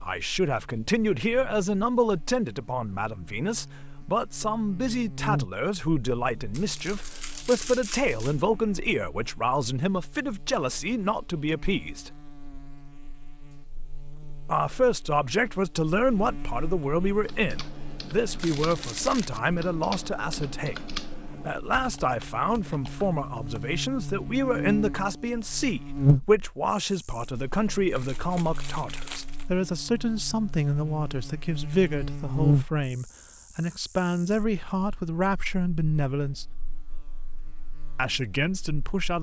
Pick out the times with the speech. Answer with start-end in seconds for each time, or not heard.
0.0-12.2, 14.4-36.5, 38.0-39.1.